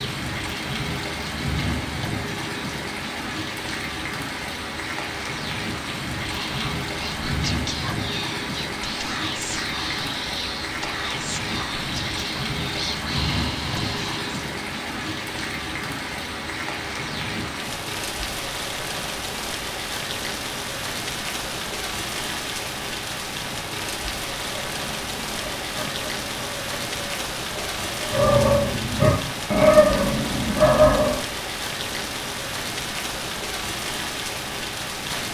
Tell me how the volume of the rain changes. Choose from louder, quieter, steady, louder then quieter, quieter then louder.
steady.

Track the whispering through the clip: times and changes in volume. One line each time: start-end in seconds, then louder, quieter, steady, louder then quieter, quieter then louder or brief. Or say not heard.
6.3-14.4 steady.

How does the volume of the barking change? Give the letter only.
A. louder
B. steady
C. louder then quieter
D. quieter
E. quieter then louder
A.